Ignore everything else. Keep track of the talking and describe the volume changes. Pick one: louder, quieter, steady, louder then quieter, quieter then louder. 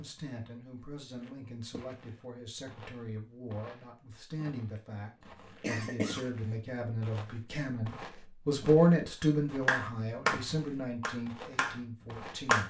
louder then quieter.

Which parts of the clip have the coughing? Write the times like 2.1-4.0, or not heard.
5.4-6.2.